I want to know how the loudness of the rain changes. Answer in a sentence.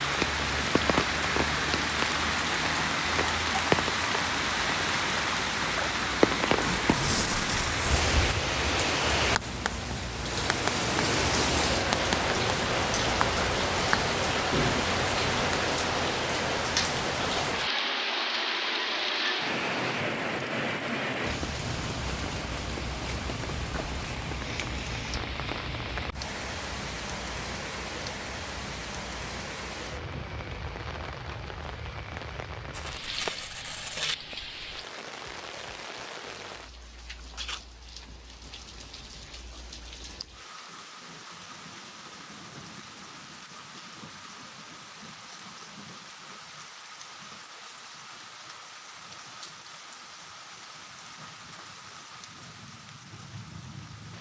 The loudness of the rain goes down.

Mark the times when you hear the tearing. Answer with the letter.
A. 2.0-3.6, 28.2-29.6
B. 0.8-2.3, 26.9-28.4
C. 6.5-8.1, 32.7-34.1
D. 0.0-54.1
C.